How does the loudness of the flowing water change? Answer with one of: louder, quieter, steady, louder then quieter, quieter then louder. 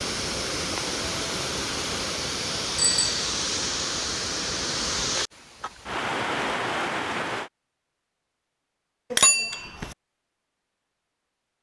steady.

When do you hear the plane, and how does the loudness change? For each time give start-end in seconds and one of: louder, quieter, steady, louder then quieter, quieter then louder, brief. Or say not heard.
not heard.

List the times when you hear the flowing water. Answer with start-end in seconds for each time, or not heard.
0.0-7.5.